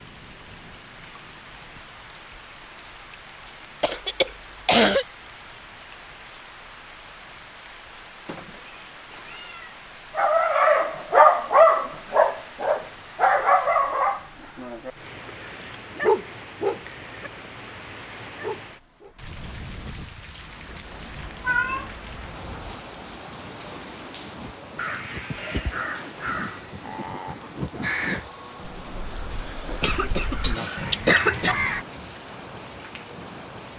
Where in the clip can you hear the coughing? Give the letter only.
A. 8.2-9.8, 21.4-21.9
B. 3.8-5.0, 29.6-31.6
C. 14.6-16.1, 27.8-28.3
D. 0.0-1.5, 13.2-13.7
B.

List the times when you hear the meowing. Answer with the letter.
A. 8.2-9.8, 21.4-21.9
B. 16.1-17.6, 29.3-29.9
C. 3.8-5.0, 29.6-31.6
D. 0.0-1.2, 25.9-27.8
A.